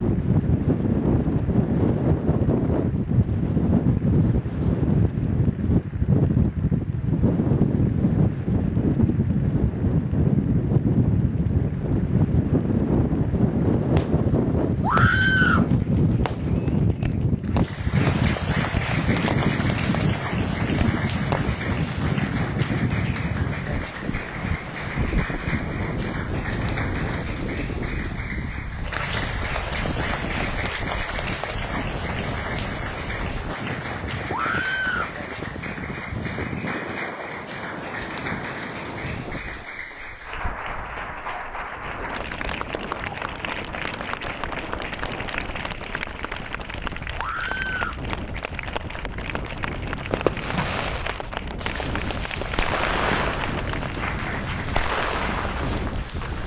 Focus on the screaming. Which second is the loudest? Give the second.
15 s.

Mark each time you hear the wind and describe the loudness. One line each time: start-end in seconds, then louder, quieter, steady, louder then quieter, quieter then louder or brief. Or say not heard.
0.0-56.4 quieter.